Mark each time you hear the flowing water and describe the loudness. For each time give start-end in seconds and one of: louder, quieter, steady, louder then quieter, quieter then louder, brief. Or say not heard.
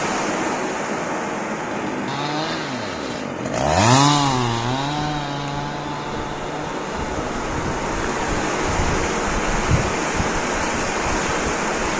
0.0-11.9 quieter then louder.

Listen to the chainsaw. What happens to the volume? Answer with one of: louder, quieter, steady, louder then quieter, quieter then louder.
louder then quieter.